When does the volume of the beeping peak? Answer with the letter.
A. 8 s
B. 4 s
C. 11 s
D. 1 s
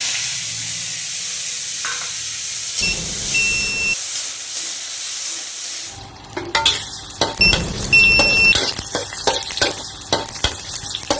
A.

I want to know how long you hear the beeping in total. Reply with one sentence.
You can hear the beeping for 2 seconds altogether.